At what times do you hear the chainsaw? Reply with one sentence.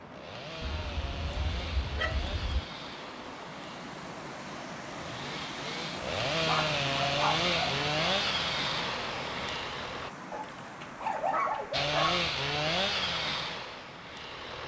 The chainsaw can be heard from 0.0 to 10.1 s and from 11.7 to 14.6 s.